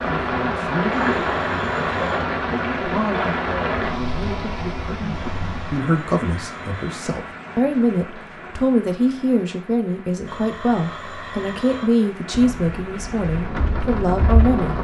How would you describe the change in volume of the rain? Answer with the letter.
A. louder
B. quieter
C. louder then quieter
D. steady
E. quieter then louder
E.